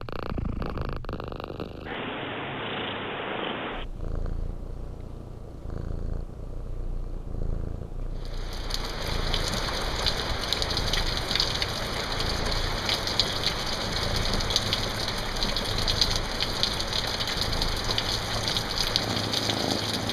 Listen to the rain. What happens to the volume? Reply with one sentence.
The loudness of the rain stays about the same.